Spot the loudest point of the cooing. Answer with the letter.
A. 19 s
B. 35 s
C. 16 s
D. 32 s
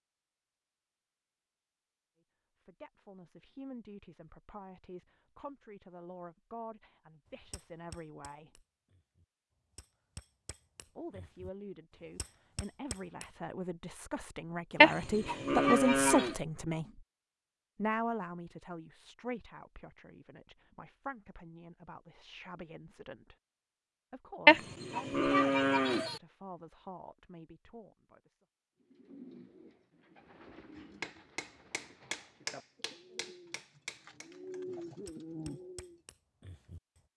B.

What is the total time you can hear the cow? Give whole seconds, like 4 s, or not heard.
3 s.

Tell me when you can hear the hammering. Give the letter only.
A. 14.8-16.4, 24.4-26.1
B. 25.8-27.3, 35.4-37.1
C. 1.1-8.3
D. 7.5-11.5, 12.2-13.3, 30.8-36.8
D.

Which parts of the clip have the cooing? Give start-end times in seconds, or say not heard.
28.8-36.0.